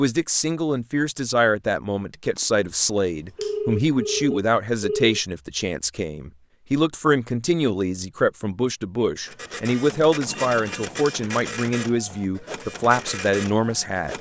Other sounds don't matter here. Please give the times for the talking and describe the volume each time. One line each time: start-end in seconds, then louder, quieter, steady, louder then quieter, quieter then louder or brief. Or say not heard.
0.0-14.1 steady.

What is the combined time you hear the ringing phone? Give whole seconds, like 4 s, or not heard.
3 s.